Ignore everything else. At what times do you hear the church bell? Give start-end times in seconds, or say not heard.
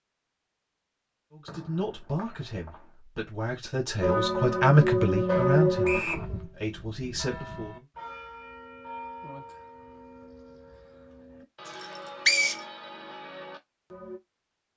4.0-14.2.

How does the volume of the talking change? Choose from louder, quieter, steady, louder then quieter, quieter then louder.
louder then quieter.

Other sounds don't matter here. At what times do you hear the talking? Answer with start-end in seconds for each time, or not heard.
1.3-7.8.